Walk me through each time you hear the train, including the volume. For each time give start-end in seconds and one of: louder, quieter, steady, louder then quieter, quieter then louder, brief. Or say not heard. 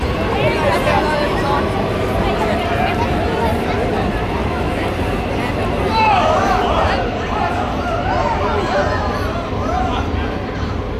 0.0-10.9 steady.